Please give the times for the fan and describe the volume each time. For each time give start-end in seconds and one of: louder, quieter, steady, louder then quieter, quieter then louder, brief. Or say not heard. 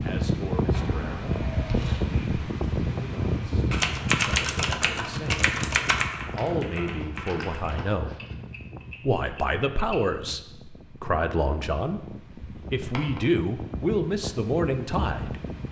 0.0-15.6 quieter then louder.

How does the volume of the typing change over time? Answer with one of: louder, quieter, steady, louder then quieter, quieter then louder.
quieter.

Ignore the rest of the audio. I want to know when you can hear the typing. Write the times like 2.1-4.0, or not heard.
3.7-10.3.